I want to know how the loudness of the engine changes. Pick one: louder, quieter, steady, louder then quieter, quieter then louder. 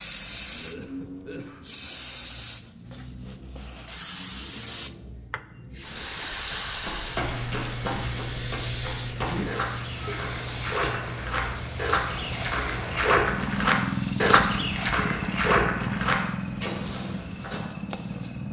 louder.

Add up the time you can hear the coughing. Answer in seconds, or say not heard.
2 s.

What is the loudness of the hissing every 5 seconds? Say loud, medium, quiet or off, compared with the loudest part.
loud, loud, medium, quiet.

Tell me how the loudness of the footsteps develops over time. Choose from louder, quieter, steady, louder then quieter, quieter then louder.
louder then quieter.